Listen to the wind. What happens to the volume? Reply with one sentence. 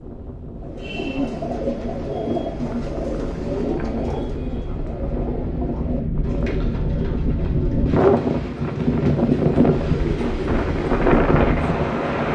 The volume of the wind goes up.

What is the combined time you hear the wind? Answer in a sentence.
The wind can be heard for 12 seconds in total.